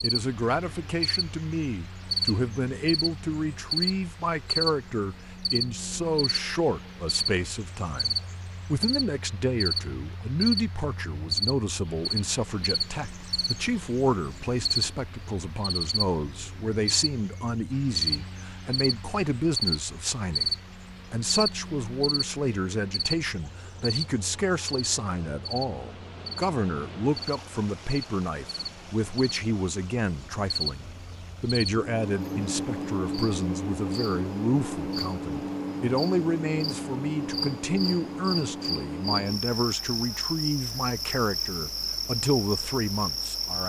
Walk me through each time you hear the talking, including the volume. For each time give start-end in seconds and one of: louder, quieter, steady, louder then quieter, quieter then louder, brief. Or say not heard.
0.0-43.6 steady.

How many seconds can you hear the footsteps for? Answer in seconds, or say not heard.
not heard.